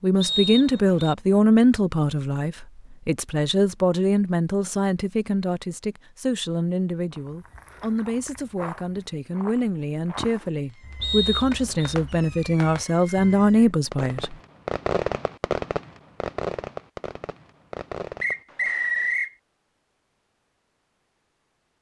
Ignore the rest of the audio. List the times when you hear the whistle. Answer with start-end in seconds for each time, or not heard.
0.2-1.1, 11.0-11.9, 18.2-19.3.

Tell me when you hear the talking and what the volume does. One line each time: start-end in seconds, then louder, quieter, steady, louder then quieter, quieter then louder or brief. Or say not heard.
0.0-14.3 quieter then louder.